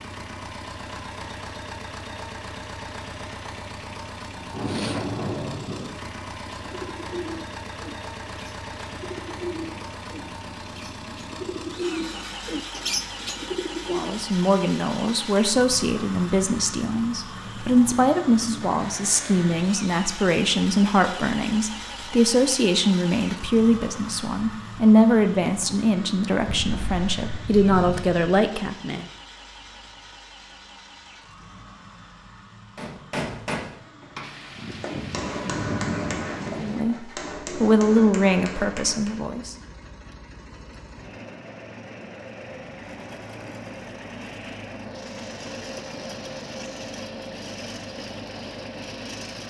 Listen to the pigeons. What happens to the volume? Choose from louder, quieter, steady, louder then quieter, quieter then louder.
quieter then louder.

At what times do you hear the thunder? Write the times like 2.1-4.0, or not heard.
4.5-6.0, 26.4-28.4, 34.2-36.8.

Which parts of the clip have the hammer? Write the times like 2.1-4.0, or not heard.
32.8-39.3.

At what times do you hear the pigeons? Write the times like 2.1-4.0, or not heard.
6.7-14.2.